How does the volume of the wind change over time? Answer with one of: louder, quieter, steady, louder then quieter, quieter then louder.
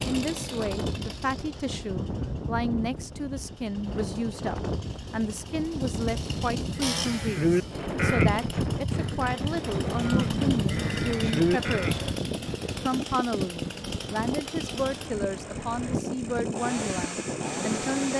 steady.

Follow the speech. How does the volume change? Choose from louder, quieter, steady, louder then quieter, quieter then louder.
steady.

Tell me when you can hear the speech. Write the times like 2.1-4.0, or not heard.
0.0-11.9, 12.8-18.1.